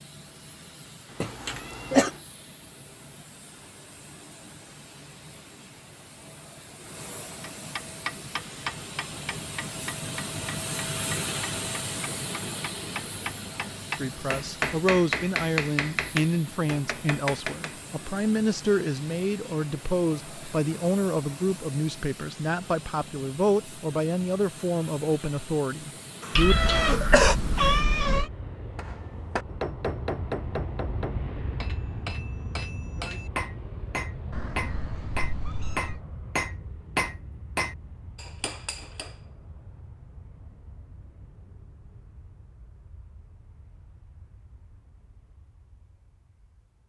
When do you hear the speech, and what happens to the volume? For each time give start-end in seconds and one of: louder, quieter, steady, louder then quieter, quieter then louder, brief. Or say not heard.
13.9-26.6 steady.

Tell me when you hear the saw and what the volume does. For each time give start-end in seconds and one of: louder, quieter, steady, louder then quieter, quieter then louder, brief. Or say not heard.
not heard.